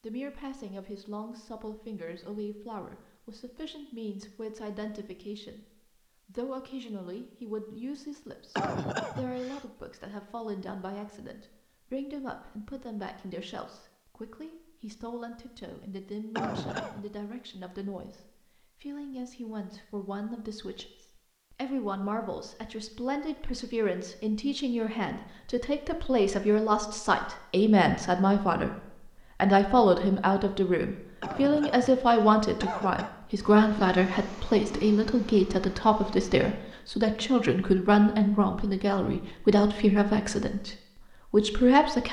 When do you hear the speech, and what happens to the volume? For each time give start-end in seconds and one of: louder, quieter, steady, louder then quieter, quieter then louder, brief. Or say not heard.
0.0-42.0 louder.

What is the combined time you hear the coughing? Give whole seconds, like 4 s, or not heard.
4 s.